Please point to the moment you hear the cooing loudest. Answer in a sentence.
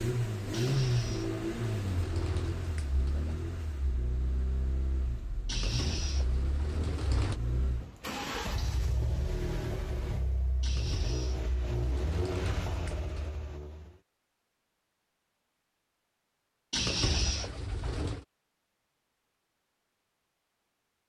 The loudest moment of the cooing is at 17 seconds.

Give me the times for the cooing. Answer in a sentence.
You can hear the cooing from 0.5 to 3.5 s, from 5.5 to 7.4 s, from 10.6 to 13.4 s and from 16.7 to 18.2 s.